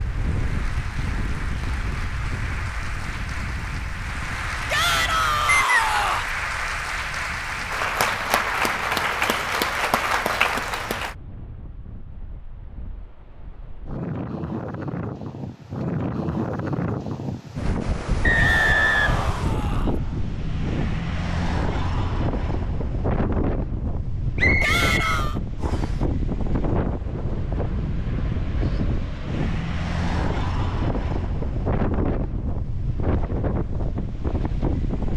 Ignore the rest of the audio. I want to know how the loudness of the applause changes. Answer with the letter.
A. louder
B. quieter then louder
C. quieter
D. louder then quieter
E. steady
A.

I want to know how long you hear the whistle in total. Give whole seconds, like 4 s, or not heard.
3 s.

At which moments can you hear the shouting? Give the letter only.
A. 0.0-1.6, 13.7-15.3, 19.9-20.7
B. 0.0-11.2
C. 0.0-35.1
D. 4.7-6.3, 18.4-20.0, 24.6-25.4
D.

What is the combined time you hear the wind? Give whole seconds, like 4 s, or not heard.
35 s.